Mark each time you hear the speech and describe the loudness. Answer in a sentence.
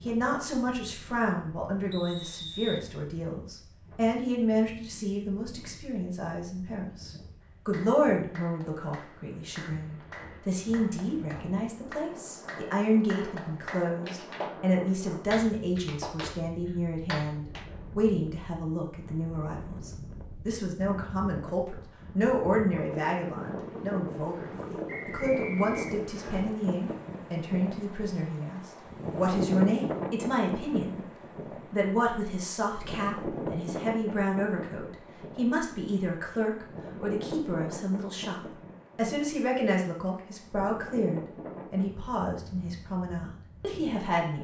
You can hear the speech from 0.0 to 44.3 s, at a steady volume.